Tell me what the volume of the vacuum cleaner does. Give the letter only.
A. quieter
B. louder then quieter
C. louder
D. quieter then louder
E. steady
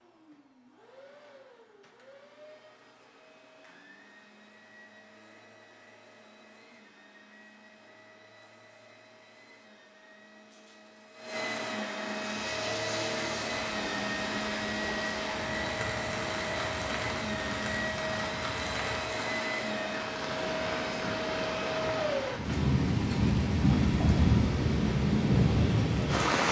C.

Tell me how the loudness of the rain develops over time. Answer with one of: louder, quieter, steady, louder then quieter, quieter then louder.
louder.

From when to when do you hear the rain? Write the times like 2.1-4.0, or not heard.
12.1-26.4.